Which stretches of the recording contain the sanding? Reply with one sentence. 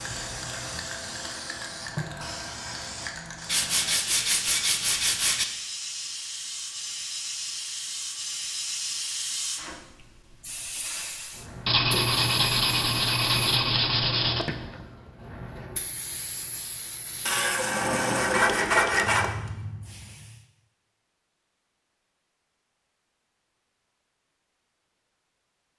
You can hear the sanding from 3.5 to 5.5 s, from 11.7 to 14.6 s and from 17.2 to 19.4 s.